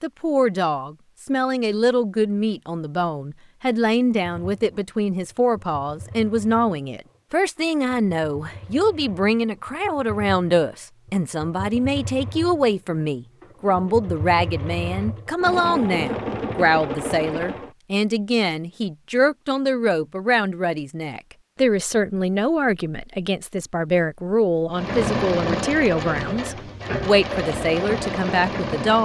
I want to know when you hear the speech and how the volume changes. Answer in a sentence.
The speech can be heard from 0.0 to 29.0 s, at a steady volume.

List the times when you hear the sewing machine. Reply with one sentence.
You can hear the sewing machine from 4.2 to 17.7 s and from 24.7 to 29.0 s.